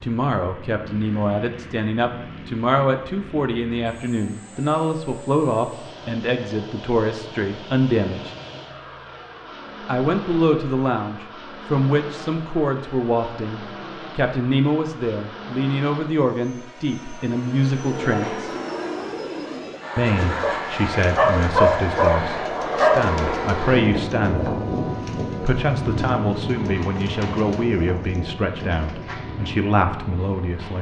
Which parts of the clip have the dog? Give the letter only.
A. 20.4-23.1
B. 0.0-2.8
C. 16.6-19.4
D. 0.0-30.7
A.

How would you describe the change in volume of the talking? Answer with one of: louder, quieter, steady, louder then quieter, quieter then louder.
steady.